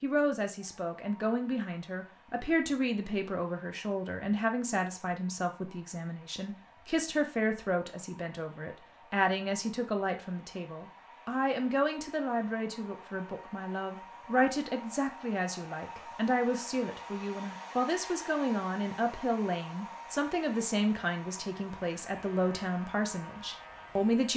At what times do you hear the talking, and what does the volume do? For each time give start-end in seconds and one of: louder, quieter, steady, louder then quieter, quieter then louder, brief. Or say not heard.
0.0-24.3 steady.